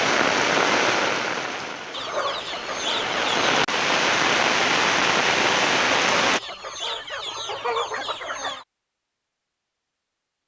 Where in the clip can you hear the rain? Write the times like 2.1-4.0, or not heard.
0.0-6.4.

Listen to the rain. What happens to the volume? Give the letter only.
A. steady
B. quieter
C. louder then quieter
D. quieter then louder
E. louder
D.